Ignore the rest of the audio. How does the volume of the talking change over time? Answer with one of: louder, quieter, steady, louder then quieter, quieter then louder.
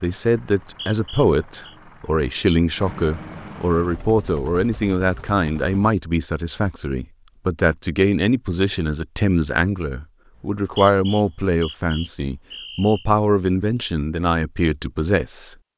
steady.